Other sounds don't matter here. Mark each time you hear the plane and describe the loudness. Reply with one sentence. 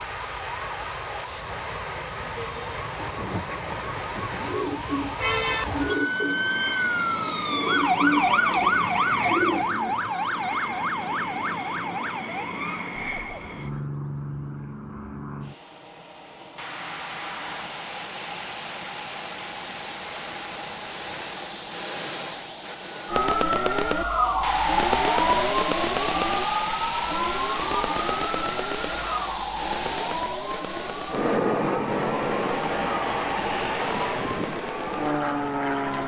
You can hear the plane from 0.0 to 36.0 s, getting louder.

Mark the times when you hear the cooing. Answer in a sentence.
The cooing can be heard from 3.0 to 10.2 s.